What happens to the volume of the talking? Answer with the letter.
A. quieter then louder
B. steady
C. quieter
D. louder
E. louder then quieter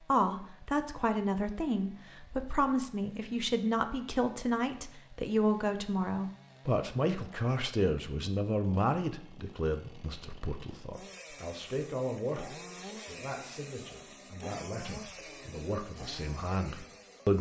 C.